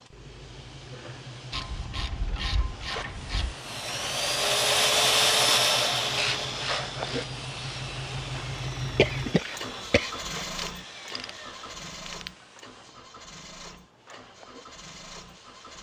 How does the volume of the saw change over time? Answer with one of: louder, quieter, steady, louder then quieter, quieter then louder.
quieter.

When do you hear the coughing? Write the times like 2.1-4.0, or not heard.
8.9-10.3.